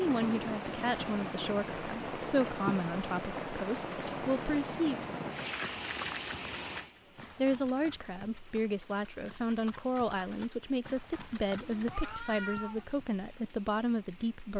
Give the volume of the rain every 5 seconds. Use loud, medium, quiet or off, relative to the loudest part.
loud, medium, quiet.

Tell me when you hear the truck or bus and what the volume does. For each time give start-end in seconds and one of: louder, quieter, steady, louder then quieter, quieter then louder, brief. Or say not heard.
not heard.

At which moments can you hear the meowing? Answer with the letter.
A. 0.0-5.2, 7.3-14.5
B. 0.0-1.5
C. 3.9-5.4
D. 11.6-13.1
D.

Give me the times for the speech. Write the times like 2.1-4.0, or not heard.
0.0-5.2, 7.3-14.5.